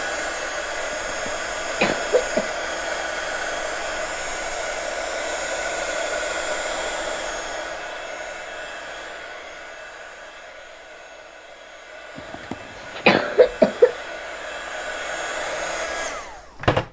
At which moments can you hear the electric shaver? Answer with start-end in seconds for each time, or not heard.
not heard.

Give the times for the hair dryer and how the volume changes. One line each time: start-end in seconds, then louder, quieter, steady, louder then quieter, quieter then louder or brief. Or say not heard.
0.0-16.8 quieter then louder.